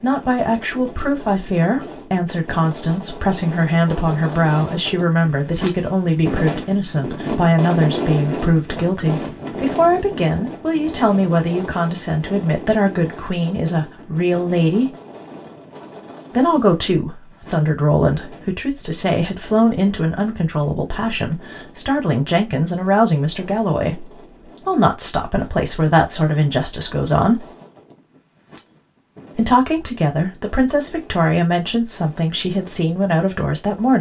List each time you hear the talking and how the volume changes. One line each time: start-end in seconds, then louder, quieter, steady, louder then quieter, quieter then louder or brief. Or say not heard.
0.0-14.9 steady
16.4-27.4 steady
29.4-33.9 steady.